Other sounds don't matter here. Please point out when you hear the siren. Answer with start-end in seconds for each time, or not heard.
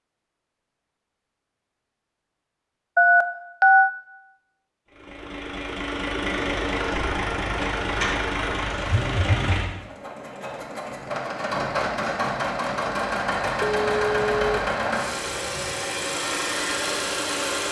not heard.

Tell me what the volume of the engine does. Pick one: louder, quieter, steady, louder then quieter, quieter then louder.
steady.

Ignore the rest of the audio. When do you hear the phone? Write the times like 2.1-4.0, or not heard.
3.0-3.9, 8.9-9.7, 13.6-14.5.